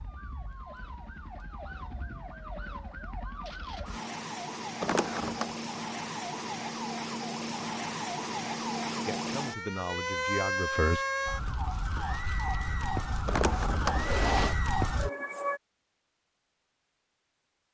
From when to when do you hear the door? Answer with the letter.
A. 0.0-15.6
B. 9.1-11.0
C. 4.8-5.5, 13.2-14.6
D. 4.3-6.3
C.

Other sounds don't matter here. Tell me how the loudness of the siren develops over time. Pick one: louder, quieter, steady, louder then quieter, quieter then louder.
louder.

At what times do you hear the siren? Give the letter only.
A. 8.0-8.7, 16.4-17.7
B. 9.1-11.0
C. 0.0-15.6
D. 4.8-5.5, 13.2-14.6
C.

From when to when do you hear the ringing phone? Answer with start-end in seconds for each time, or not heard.
not heard.